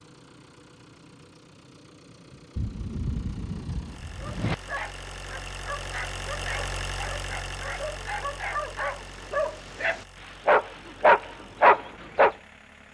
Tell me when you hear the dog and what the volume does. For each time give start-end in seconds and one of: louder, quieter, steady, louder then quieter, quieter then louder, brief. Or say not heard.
4.2-12.3 louder.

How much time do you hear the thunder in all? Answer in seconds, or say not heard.
2 s.